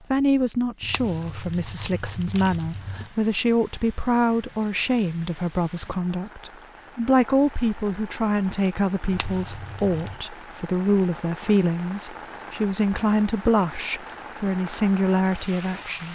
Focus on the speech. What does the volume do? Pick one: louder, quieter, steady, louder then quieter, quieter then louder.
steady.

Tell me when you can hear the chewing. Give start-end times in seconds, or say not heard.
not heard.